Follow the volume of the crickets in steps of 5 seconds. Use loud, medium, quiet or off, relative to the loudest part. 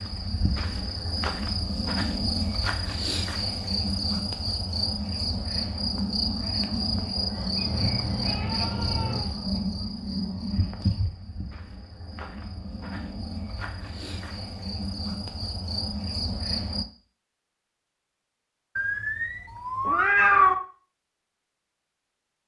loud, loud, medium, loud, off.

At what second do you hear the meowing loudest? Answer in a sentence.
The loudest moment of the meowing is at 20 seconds.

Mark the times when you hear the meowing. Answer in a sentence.
The meowing can be heard from 7.5 to 9.2 s and from 18.8 to 20.6 s.